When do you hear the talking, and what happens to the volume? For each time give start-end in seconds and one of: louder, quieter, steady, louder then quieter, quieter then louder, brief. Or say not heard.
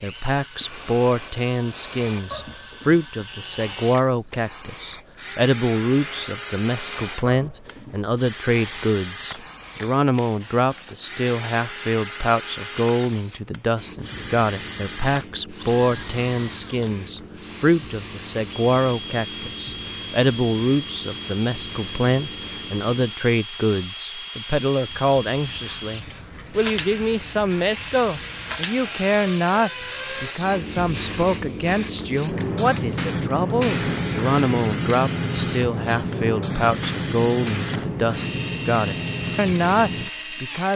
0.0-40.7 steady.